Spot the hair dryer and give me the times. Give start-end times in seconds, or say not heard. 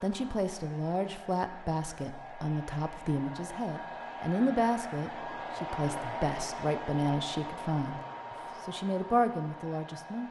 0.0-10.2.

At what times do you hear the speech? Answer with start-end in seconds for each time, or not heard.
0.0-8.0, 8.7-10.2.